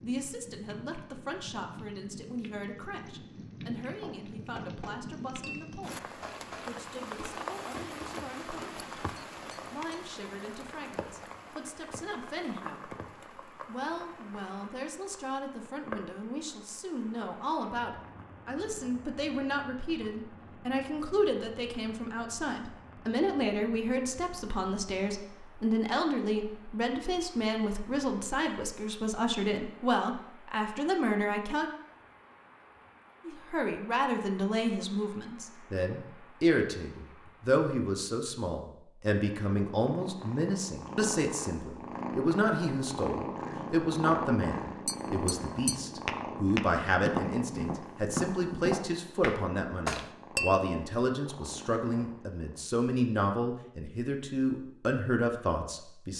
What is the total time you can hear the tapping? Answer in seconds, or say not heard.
12 s.